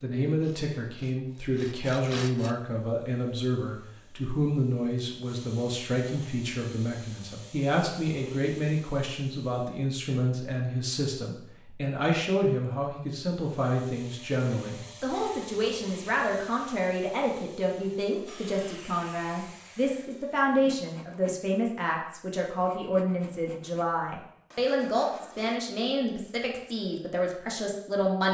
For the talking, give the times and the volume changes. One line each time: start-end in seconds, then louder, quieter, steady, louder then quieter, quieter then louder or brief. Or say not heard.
0.0-28.2 steady.